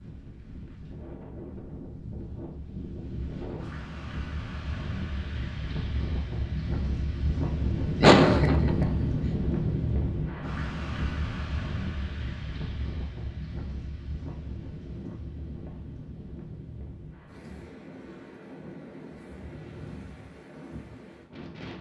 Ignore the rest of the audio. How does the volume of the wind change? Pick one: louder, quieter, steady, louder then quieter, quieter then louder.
louder then quieter.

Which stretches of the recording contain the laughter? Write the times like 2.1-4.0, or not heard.
8.0-9.1.